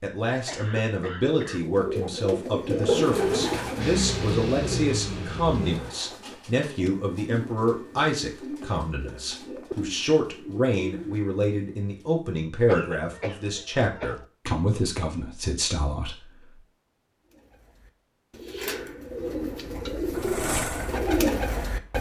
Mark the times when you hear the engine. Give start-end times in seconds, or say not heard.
2.8-5.8, 20.1-21.9.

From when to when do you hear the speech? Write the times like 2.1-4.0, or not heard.
0.0-16.6.